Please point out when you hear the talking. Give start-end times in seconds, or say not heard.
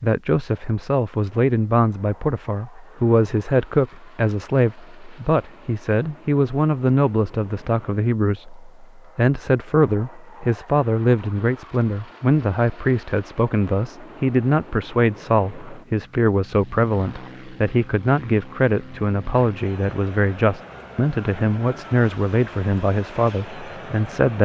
0.0-24.4.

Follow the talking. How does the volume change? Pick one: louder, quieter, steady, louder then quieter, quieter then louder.
steady.